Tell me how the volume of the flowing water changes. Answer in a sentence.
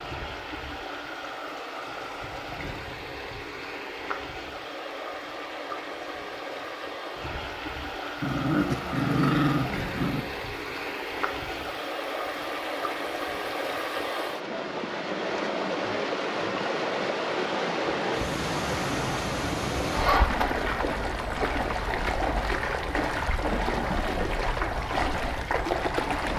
The volume of the flowing water goes up.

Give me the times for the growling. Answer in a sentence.
You can hear the growling from 8.2 to 10.2 s.